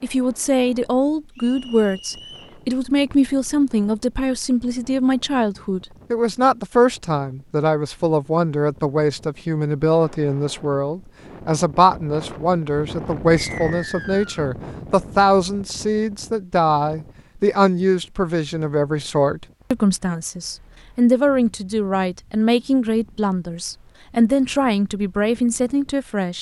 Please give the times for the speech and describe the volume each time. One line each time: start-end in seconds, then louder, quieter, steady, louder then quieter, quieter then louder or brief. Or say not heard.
0.0-26.3 steady.